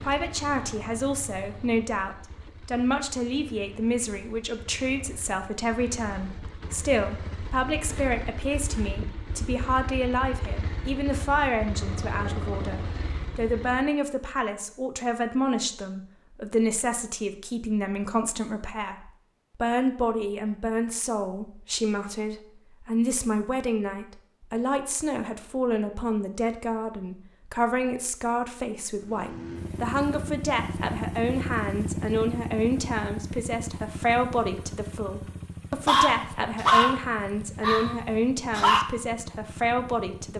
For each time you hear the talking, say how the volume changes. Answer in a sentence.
The talking can be heard from 0.0 to 40.3 s, at a steady volume.